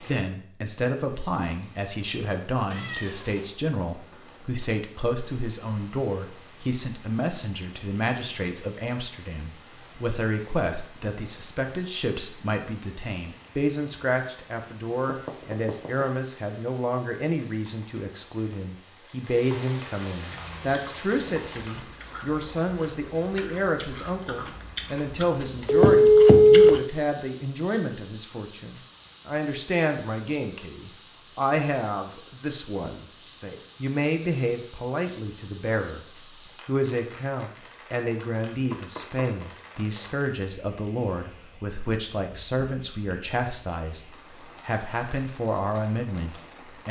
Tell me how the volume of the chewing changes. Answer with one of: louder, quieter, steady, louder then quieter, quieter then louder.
louder.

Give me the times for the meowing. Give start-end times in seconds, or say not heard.
2.7-3.6.